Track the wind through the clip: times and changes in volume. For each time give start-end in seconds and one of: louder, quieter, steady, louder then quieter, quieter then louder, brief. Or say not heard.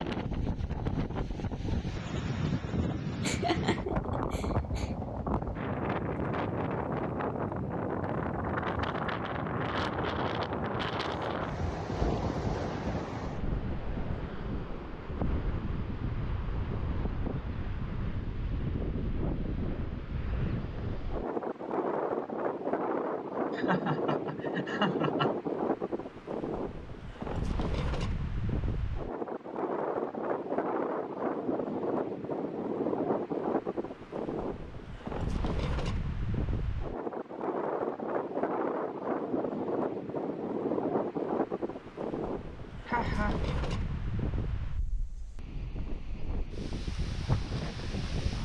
0.0-48.4 steady.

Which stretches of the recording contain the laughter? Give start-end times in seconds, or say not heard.
3.2-4.9, 23.6-25.3, 42.9-43.4.